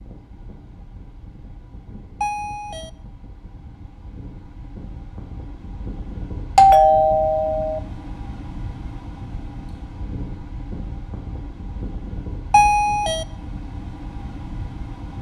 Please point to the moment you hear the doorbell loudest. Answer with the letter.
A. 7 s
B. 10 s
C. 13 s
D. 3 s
A.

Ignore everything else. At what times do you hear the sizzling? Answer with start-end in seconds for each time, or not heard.
not heard.